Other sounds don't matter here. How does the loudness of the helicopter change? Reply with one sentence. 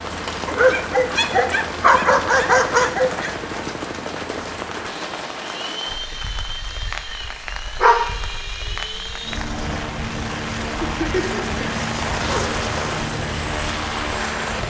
The volume of the helicopter goes up.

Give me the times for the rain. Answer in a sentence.
You can hear the rain from 0.0 to 14.6 s.